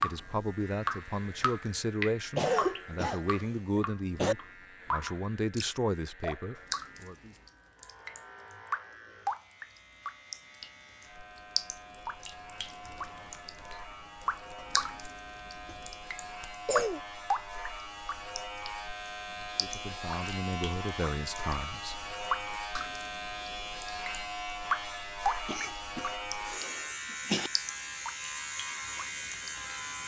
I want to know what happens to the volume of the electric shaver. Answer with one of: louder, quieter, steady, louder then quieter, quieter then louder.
louder.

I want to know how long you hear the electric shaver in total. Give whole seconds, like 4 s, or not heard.
30 s.